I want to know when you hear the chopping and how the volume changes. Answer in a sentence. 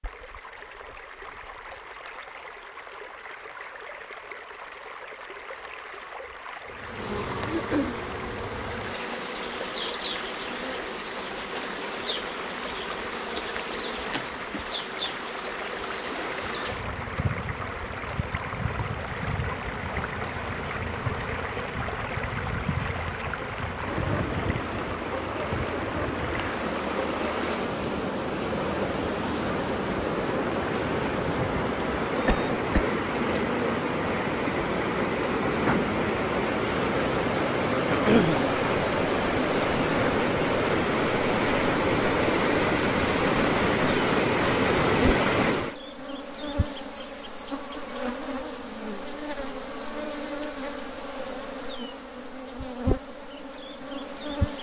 You can't hear the chopping here.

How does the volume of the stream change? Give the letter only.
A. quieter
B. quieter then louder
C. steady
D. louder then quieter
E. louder
E.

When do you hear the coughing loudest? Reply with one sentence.
The loudest moment of the coughing is at 38 seconds.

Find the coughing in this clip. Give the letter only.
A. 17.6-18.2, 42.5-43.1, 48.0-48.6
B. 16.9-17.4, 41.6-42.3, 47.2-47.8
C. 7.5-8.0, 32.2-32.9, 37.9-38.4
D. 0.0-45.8
C.